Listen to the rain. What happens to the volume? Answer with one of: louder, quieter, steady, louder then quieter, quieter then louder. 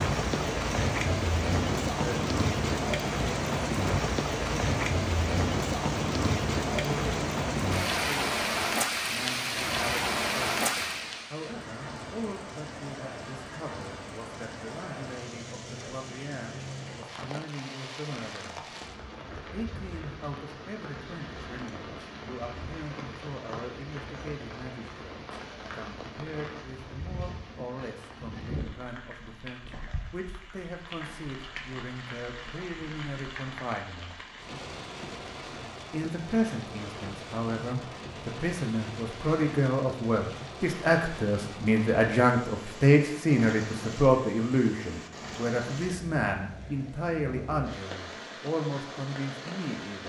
quieter.